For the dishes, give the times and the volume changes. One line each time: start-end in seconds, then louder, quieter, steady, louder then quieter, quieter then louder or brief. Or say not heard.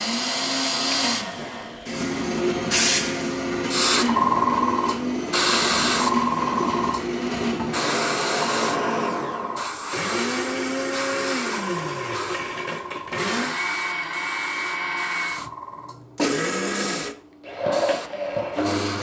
not heard.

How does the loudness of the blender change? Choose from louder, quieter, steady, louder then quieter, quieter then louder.
steady.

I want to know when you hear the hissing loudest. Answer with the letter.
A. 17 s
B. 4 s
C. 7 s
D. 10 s
B.